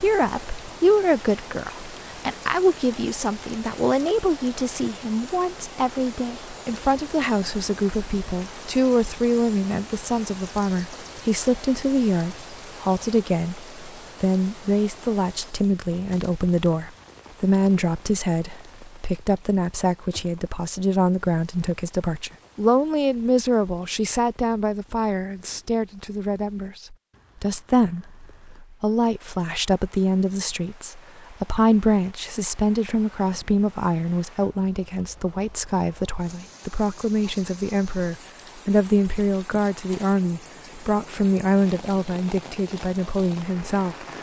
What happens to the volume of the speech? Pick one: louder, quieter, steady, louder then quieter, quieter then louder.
steady.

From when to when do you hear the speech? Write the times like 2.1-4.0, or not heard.
0.0-44.1.